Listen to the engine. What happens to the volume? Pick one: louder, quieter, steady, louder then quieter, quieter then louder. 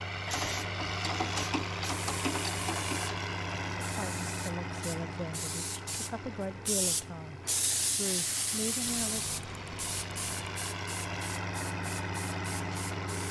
quieter then louder.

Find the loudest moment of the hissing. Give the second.
8 s.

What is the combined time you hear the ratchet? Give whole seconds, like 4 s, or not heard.
5 s.